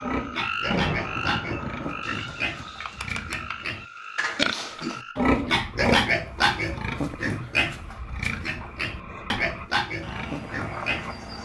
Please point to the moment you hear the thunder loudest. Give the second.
1 s.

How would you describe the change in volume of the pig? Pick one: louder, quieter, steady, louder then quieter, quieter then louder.
louder then quieter.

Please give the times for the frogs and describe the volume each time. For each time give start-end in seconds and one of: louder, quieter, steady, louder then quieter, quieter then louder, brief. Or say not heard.
0.0-11.4 quieter then louder.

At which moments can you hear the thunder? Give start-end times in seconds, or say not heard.
0.7-2.7.